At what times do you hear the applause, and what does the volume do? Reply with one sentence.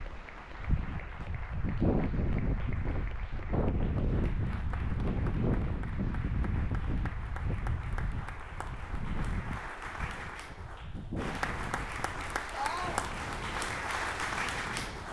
The applause can be heard from 0.0 to 15.0 s, getting louder.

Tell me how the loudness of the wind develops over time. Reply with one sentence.
The volume of the wind goes down.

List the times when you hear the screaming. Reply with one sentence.
The screaming can be heard from 12.5 to 13.1 s.